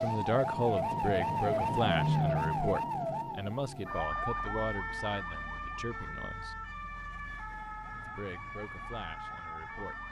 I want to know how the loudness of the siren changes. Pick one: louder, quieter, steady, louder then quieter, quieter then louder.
quieter.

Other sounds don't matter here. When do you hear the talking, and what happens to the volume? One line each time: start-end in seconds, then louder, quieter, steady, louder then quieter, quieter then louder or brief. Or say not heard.
0.0-6.6 quieter
8.1-10.0 brief.